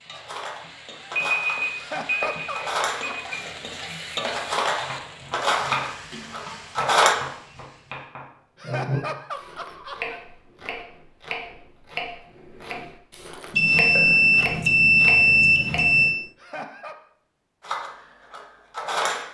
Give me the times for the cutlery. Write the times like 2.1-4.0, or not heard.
0.1-7.2, 17.6-19.2.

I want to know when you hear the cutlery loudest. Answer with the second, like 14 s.
7 s.